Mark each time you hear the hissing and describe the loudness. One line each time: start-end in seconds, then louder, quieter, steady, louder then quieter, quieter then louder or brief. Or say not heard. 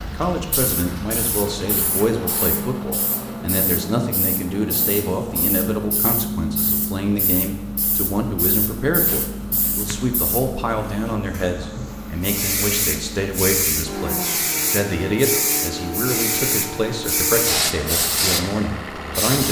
0.0-19.4 louder.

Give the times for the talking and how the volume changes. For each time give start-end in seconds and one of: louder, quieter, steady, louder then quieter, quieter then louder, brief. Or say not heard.
0.0-19.4 steady.